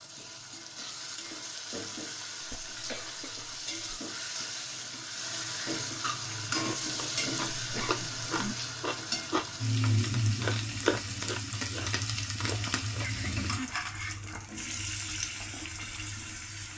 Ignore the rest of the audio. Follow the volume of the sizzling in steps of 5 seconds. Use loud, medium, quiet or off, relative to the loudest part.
medium, loud, loud, medium.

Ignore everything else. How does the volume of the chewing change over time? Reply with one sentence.
The loudness of the chewing goes up, then down.